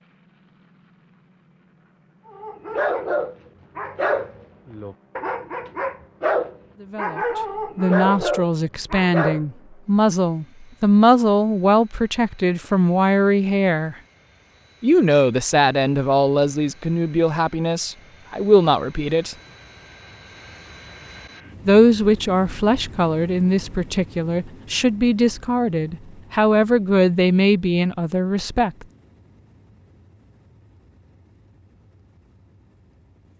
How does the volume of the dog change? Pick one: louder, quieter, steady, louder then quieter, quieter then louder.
steady.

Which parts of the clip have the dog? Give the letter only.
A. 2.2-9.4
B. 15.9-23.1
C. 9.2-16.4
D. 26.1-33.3
A.